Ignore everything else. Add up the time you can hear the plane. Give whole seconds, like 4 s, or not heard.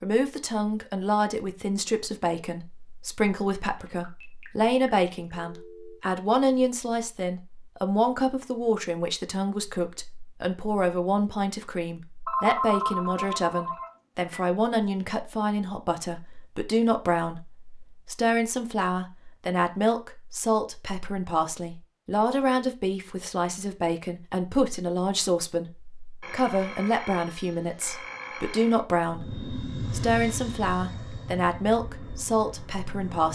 4 s.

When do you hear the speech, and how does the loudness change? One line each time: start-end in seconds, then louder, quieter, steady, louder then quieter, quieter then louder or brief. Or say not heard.
0.0-33.2 steady.